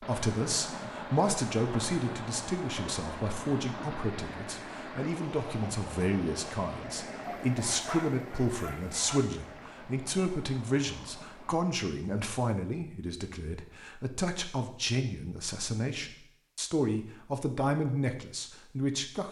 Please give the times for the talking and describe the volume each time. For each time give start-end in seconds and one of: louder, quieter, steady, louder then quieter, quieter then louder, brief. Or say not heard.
0.0-19.2 steady.